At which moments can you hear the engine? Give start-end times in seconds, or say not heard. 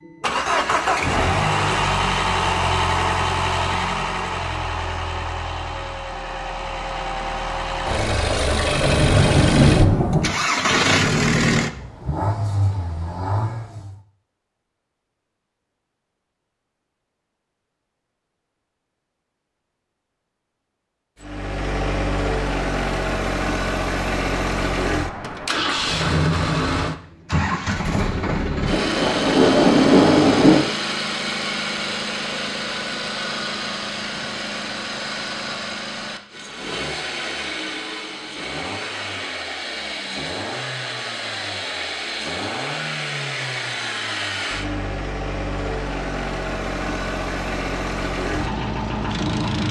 0.1-13.9, 21.2-49.6.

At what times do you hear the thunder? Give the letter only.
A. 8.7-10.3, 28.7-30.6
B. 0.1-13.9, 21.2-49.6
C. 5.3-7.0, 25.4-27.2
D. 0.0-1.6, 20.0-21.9
A.